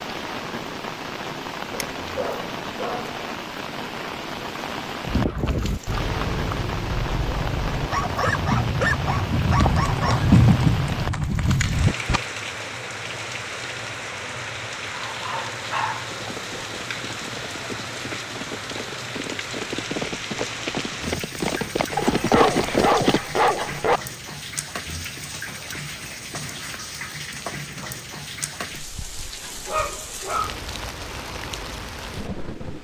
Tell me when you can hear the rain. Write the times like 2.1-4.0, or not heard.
0.0-32.7.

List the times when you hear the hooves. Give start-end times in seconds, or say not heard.
5.0-12.2, 16.1-23.2.